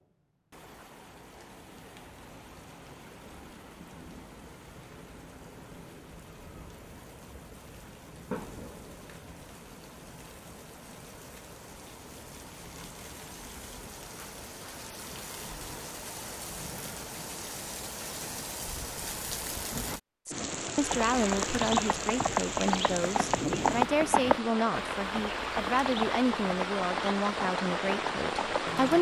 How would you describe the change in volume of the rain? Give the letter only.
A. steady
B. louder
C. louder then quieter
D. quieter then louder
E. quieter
B.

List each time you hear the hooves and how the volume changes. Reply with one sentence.
The hooves can be heard from 20.8 to 28.9 s, getting quieter.